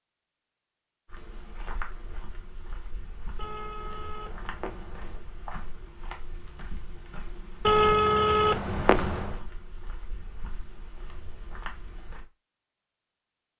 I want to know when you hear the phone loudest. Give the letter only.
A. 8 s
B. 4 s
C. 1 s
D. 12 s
A.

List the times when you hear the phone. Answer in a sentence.
You can hear the phone from 3.4 to 5.2 s and from 7.7 to 9.4 s.